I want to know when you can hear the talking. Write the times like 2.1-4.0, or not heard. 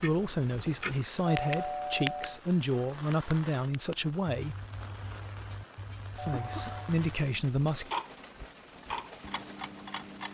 0.0-4.5, 6.2-7.9.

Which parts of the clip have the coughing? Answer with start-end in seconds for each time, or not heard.
6.3-6.9.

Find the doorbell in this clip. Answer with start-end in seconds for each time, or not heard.
1.2-2.4, 6.2-6.8.